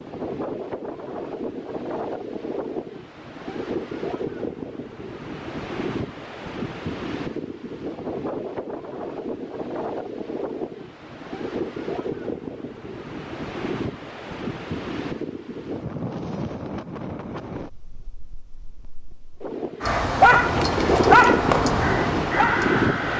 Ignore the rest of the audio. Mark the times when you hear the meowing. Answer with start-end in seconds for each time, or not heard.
not heard.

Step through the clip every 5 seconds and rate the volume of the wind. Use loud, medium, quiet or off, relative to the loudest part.
medium, medium, medium, medium, loud.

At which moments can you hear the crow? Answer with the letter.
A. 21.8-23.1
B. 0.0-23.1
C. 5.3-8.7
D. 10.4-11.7
A.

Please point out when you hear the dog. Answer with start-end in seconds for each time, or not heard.
19.8-23.1.